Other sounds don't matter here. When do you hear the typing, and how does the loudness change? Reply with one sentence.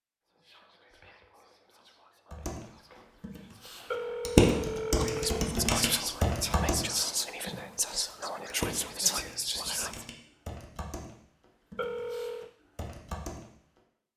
The typing can be heard from 2.3 to 13.8 s, getting quieter.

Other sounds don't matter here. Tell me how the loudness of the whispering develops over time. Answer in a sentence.
The volume of the whispering goes up.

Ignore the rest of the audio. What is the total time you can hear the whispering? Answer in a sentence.
The whispering can be heard for 10 seconds in total.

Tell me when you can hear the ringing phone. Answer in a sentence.
The ringing phone can be heard from 3.9 to 5.6 s and from 11.8 to 12.5 s.